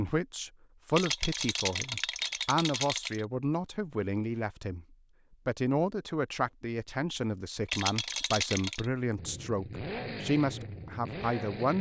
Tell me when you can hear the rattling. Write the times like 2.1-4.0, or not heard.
0.9-3.2, 7.7-8.8.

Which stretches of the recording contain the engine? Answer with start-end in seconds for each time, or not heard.
9.2-11.7.